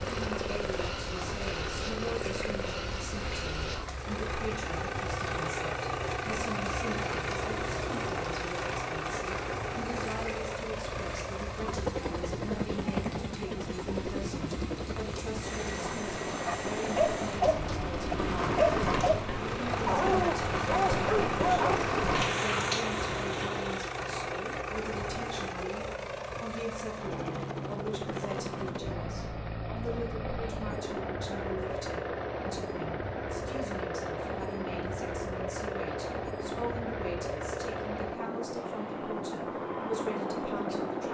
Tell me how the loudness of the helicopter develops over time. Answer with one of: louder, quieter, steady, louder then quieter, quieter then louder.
steady.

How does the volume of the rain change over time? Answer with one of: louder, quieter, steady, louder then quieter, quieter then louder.
louder.